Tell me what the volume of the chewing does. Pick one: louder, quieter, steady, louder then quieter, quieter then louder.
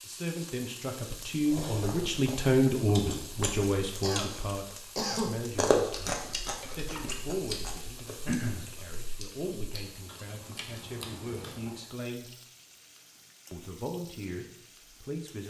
louder then quieter.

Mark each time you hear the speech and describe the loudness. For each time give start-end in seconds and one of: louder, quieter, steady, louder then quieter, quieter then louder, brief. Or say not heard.
0.1-12.3 quieter
13.5-15.4 brief.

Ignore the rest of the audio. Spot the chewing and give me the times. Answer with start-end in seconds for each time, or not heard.
1.4-11.8.